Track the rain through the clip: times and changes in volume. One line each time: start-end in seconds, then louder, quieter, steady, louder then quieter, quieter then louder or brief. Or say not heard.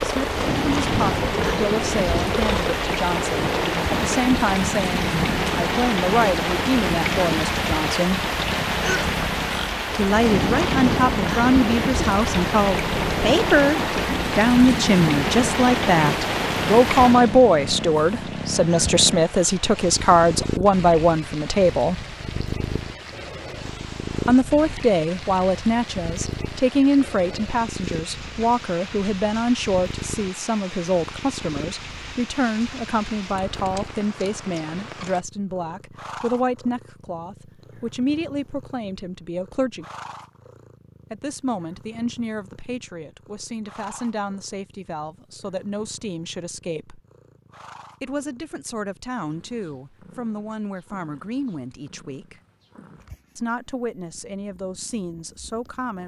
0.0-35.2 quieter.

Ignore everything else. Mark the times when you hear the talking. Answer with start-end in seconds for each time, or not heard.
0.0-8.2, 9.9-21.9, 24.2-39.9, 41.1-47.0, 48.0-52.4, 53.4-56.0.